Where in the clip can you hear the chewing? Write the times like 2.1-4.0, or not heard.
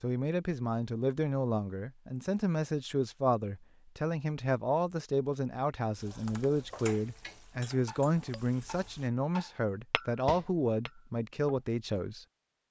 not heard.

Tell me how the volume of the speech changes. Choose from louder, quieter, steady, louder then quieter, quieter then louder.
steady.